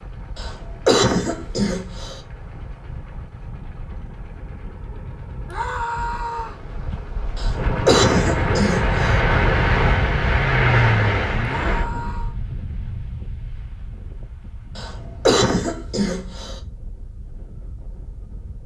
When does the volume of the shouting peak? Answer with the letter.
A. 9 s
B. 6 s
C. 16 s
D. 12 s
B.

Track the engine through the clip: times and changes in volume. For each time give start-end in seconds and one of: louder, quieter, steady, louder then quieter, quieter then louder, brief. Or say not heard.
0.0-11.8 louder.